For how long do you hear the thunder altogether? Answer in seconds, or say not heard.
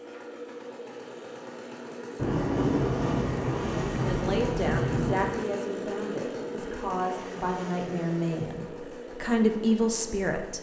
3 s.